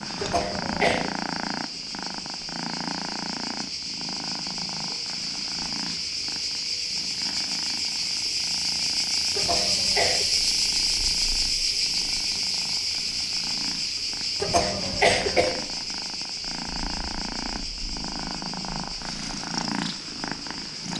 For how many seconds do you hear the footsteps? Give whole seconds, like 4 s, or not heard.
not heard.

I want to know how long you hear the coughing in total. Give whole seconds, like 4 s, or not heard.
3 s.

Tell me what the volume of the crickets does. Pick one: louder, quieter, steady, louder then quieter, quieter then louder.
louder then quieter.